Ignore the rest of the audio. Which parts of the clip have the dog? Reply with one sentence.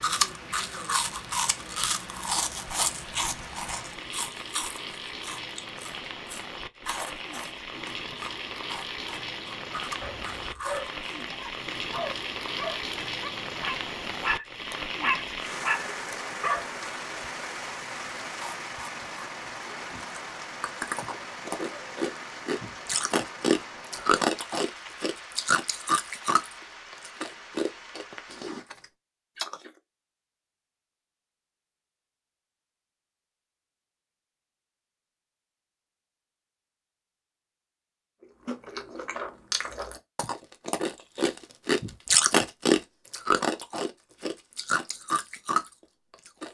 You can hear the dog from 10.0 to 16.6 s.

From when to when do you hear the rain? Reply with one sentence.
The rain can be heard from 0.0 to 28.6 s.